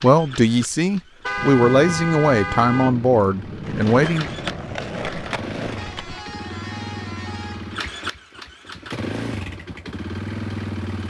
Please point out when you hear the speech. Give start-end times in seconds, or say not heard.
0.0-4.2.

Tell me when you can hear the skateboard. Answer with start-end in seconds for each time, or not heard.
3.6-6.2.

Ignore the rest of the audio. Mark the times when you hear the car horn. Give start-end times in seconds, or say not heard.
1.2-3.0, 5.8-7.8.